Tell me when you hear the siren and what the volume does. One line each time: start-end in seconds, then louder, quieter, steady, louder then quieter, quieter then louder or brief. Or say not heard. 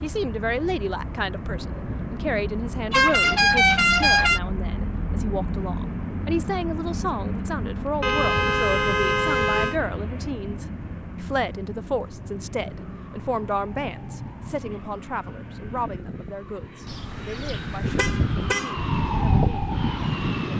12.6-20.5 louder.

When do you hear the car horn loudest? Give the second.
4 s.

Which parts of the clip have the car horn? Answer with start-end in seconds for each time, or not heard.
2.9-4.4, 8.0-9.8, 16.9-18.8.